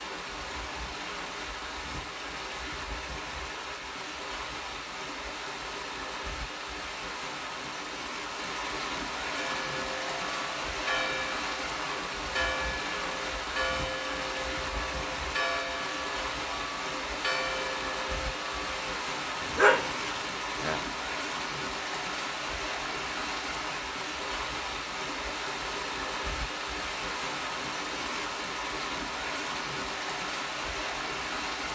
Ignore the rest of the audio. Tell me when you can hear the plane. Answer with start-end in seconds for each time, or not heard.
not heard.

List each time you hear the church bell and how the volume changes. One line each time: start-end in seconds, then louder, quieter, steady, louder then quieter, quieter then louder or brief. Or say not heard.
9.3-18.8 steady.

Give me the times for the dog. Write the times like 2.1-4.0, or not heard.
19.4-20.8.